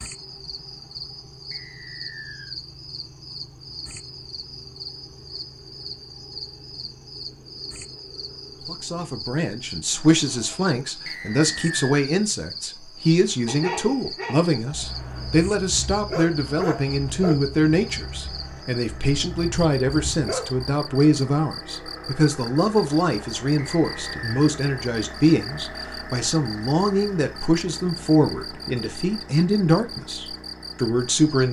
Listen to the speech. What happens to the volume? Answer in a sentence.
The volume of the speech stays about the same.